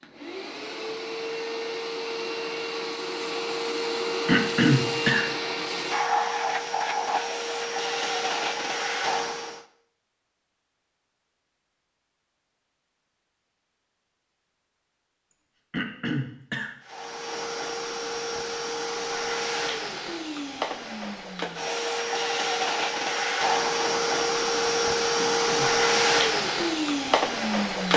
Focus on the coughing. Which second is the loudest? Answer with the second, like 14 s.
5 s.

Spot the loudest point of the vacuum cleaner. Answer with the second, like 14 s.
26 s.